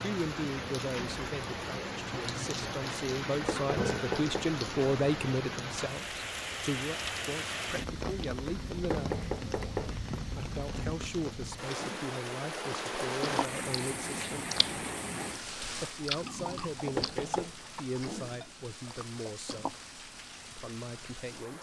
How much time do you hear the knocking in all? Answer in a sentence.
You can hear the knocking for 3 seconds altogether.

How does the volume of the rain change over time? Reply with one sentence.
The loudness of the rain goes down.